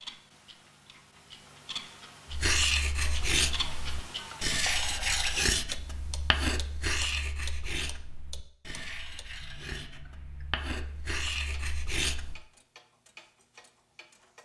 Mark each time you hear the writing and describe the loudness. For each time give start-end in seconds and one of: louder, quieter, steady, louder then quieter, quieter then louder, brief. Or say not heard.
2.3-12.4 quieter then louder.